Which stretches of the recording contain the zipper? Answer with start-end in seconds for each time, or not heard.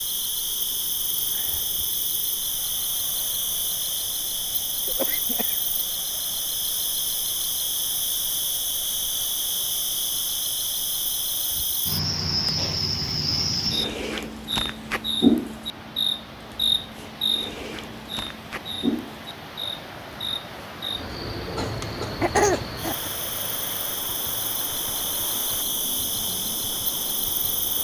not heard.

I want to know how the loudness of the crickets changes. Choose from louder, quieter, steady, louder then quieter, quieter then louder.
louder then quieter.